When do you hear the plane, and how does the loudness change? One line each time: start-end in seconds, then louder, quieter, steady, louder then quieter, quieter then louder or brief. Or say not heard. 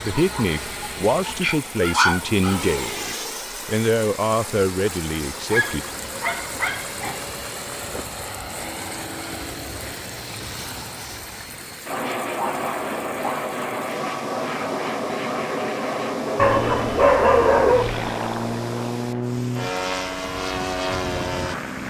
0.0-21.8 louder.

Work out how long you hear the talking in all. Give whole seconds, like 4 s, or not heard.
6 s.